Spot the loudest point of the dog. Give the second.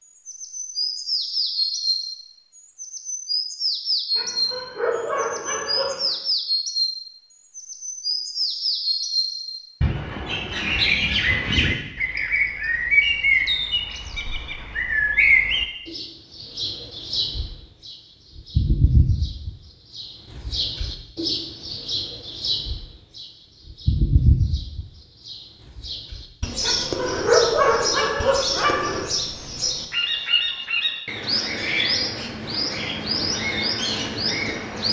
27 s.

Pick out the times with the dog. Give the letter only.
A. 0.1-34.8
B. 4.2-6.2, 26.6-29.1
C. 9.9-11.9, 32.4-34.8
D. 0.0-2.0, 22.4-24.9
B.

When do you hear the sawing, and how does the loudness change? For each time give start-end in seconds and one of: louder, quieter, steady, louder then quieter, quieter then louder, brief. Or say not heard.
not heard.